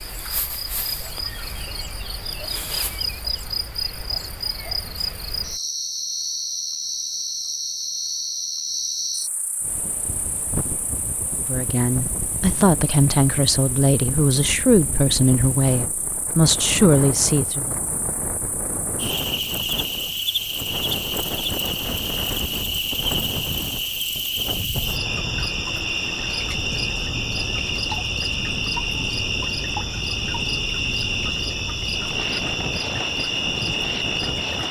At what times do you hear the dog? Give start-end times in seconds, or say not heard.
not heard.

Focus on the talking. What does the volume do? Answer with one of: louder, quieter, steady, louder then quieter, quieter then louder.
steady.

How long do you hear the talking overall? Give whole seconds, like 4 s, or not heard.
6 s.